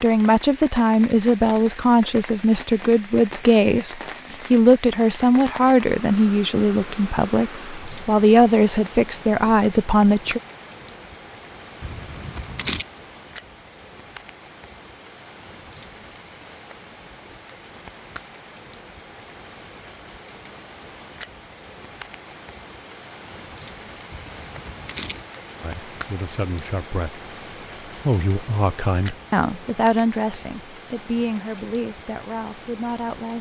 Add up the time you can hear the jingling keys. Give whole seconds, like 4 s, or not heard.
2 s.